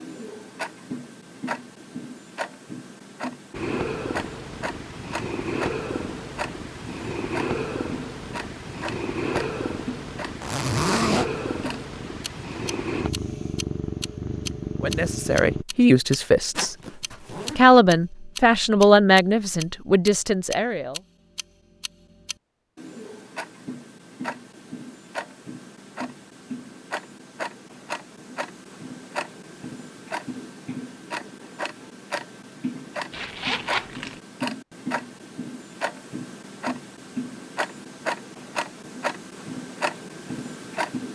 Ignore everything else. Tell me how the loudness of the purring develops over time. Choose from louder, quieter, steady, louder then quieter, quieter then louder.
steady.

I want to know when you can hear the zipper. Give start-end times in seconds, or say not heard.
10.4-11.2, 16.6-17.6, 33.1-34.2.